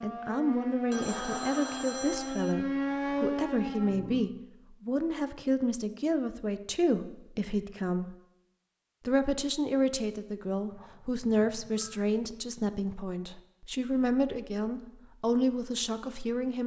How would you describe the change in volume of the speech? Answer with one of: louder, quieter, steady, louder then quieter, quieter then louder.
steady.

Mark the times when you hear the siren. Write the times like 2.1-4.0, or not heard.
0.0-4.2.